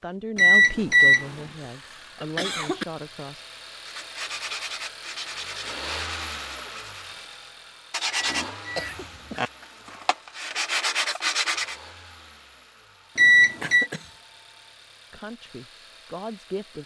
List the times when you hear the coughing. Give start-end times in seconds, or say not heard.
1.4-2.9, 8.8-9.5, 13.6-14.2.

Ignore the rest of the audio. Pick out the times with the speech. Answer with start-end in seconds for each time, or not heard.
0.0-3.5, 15.1-16.8.